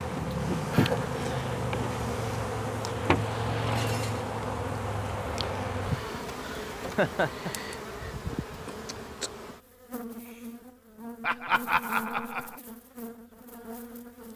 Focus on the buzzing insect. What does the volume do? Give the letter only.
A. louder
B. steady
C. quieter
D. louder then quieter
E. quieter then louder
C.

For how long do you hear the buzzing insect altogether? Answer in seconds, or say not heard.
14 s.